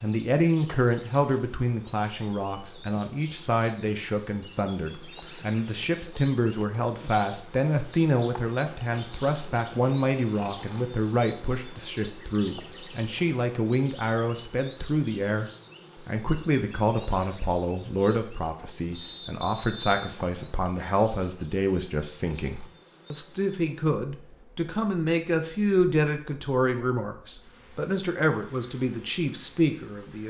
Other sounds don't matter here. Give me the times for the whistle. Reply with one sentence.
The whistle can be heard from 18.9 to 20.6 s.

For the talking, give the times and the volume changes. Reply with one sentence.
You can hear the talking from 0.0 to 30.2 s, at a steady volume.